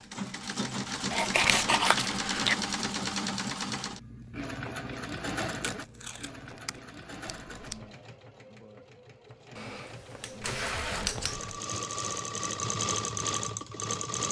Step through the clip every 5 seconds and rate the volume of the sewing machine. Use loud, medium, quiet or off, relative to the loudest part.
loud, medium, loud.